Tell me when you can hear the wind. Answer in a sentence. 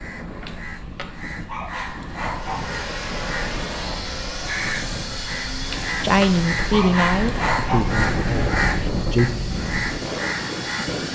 The wind can be heard from 0.0 to 11.1 s.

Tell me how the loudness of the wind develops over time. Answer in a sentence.
The loudness of the wind goes up.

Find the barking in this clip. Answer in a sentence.
The barking can be heard from 0.9 to 2.8 s and from 6.2 to 7.9 s.